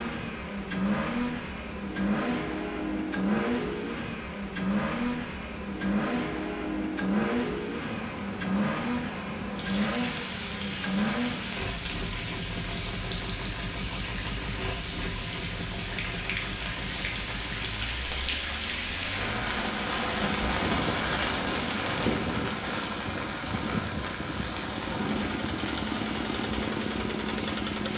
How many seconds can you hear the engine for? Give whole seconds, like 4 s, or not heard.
28 s.